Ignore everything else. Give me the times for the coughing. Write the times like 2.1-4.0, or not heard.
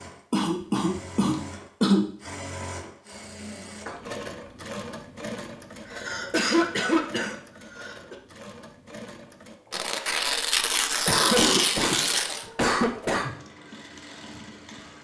0.3-2.1, 5.8-8.2, 11.1-13.3.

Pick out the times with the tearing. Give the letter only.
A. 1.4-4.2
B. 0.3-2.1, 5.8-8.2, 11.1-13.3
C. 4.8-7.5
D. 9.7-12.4
D.